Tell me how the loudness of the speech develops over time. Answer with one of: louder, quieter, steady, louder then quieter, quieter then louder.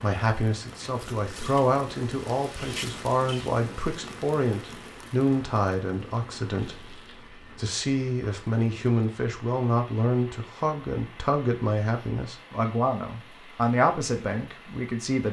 steady.